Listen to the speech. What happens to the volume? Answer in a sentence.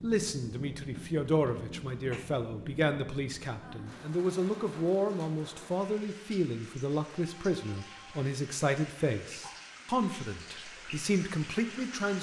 The volume of the speech stays about the same.